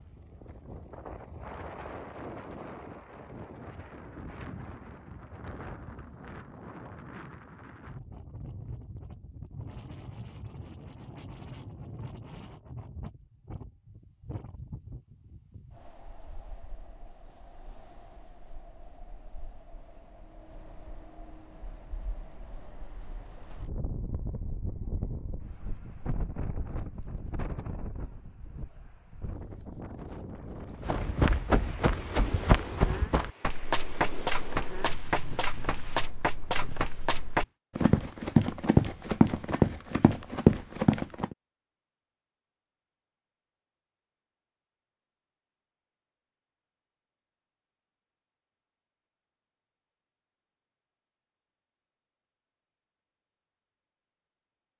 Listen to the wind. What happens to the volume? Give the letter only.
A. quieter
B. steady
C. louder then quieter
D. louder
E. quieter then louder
E.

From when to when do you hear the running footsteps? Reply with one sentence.
You can hear the running footsteps from 30.8 to 41.4 s.